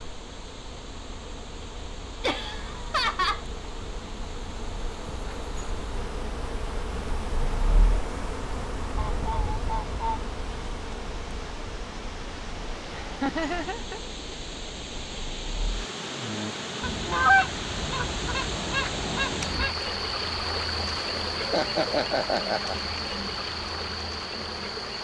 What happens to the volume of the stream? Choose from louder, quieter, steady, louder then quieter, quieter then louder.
louder.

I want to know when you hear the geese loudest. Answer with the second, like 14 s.
17 s.